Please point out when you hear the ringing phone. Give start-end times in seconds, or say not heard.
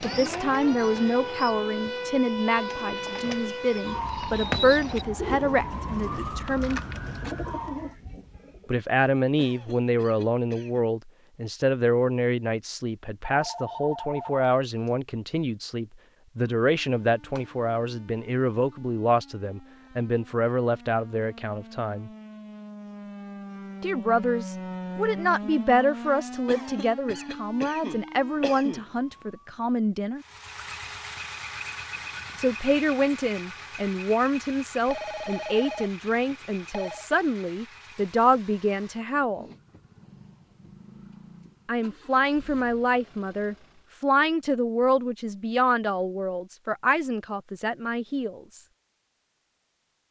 13.2-14.9, 34.9-37.0.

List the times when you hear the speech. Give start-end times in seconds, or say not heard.
0.0-6.8, 8.7-22.1, 23.8-30.2, 32.4-39.5, 41.6-48.6.